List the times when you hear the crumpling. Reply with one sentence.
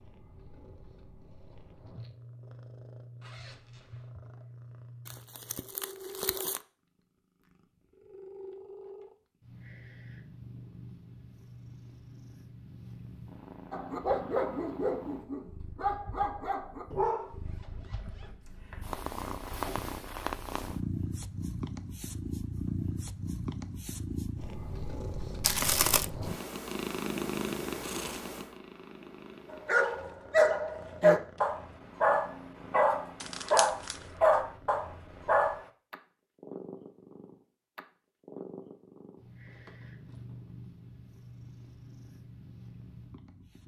The crumpling can be heard from 5.0 to 6.6 s, from 25.4 to 26.1 s and from 33.2 to 34.1 s.